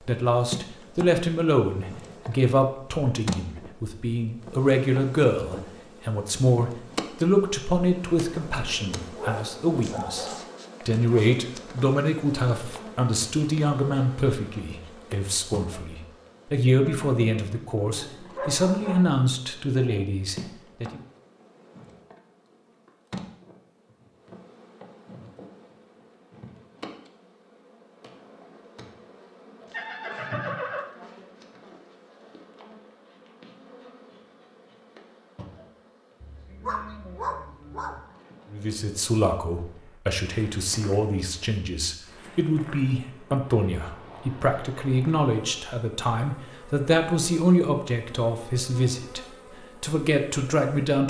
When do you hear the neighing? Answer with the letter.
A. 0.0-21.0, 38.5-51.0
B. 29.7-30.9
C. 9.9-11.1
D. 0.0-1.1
B.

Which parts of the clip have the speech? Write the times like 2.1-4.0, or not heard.
0.0-21.0, 38.5-51.0.